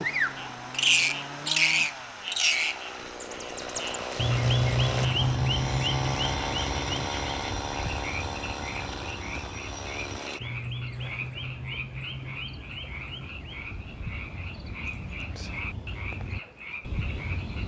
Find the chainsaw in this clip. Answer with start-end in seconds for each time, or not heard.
0.0-10.4.